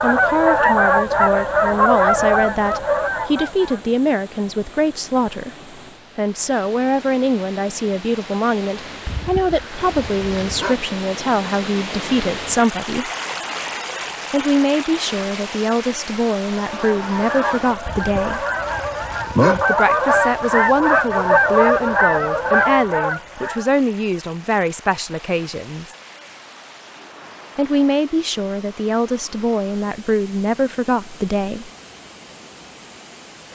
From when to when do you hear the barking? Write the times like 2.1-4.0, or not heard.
9.1-10.8, 17.9-19.6.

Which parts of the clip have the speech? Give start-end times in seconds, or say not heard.
0.0-5.5, 6.2-13.1, 14.3-18.4, 19.6-25.9, 27.6-31.7.